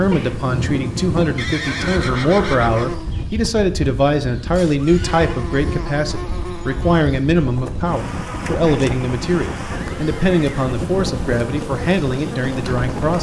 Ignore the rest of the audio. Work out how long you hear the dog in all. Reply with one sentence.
You can't hear the dog here.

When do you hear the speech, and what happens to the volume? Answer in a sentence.
The speech can be heard from 0.0 to 13.1 s, at a steady volume.